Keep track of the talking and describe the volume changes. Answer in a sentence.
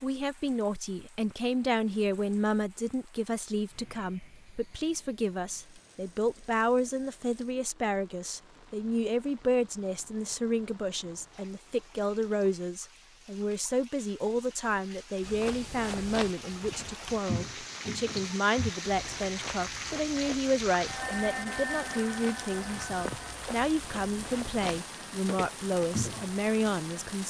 The volume of the talking stays about the same.